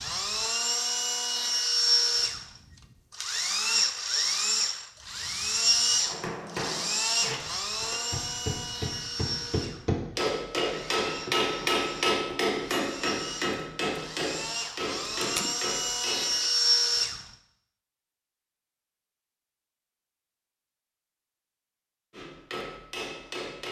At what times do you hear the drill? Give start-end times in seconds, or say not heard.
0.0-17.2.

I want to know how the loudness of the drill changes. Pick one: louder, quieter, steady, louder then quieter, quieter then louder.
quieter then louder.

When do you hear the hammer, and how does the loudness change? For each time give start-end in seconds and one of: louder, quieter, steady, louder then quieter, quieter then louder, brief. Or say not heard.
6.0-16.5 louder then quieter
22.1-23.6 brief.